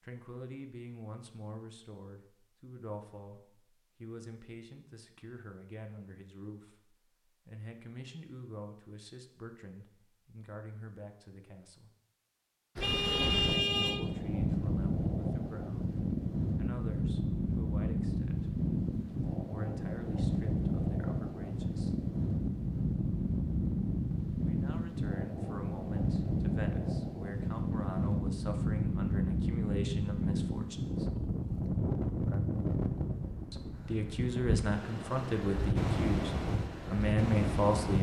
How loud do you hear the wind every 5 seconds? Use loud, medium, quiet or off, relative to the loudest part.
off, off, loud, loud, loud, loud, loud, loud.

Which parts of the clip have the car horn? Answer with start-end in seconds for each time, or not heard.
12.8-14.0.